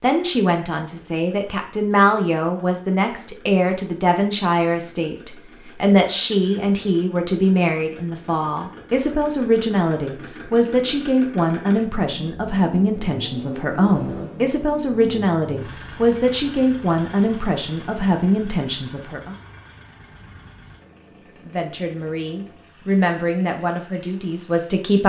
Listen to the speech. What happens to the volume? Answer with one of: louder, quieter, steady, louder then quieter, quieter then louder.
steady.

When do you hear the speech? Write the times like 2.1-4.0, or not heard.
0.0-19.4, 21.4-25.0.